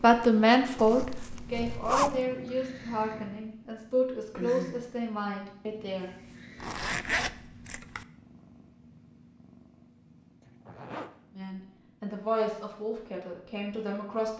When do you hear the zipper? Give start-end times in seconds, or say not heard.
0.8-2.2, 6.6-8.1, 10.4-11.2.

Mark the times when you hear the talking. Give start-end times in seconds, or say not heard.
0.0-6.1, 11.3-14.3.